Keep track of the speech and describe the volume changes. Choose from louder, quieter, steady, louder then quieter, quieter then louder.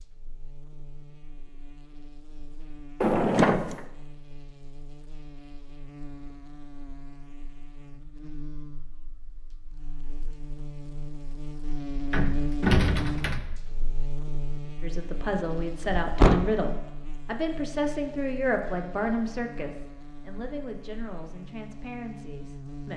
quieter.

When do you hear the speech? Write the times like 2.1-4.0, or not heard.
14.8-22.9.